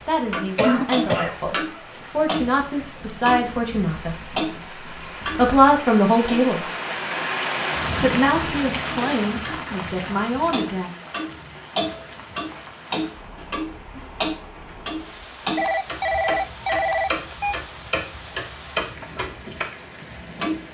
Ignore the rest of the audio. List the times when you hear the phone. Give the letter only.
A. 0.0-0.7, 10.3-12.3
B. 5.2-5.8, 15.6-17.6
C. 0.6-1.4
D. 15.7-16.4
B.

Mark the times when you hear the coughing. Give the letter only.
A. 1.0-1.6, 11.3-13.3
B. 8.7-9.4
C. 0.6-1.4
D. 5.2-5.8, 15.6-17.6
C.